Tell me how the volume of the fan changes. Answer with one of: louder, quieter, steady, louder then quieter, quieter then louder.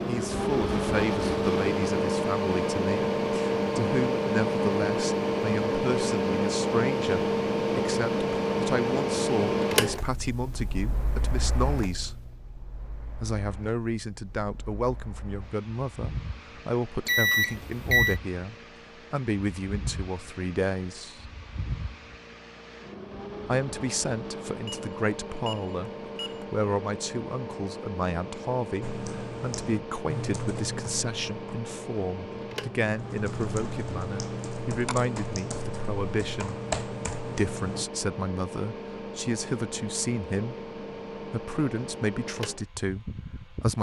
quieter.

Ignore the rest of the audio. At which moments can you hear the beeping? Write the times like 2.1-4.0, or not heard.
17.1-18.2, 24.4-26.4.